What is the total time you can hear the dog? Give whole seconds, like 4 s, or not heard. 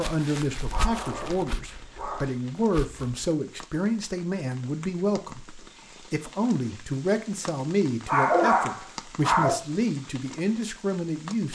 3 s.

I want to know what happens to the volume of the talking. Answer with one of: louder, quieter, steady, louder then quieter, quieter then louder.
steady.